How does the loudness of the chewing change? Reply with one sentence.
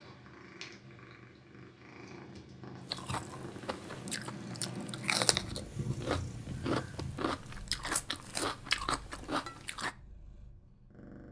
The volume of the chewing goes up.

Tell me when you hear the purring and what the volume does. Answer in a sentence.
The purring can be heard from 0.0 to 11.2 s, getting louder then quieter.